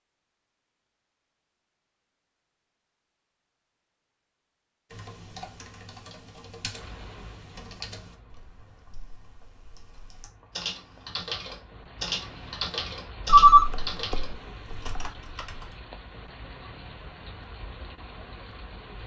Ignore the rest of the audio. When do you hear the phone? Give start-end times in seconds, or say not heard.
13.2-15.1.